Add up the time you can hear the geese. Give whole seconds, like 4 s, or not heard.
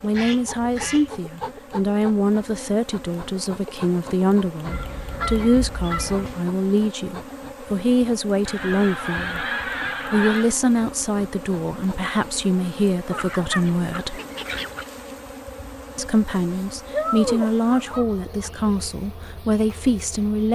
8 s.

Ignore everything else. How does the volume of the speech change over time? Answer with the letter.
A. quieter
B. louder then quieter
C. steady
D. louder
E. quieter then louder
C.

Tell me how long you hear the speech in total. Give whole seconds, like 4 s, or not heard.
18 s.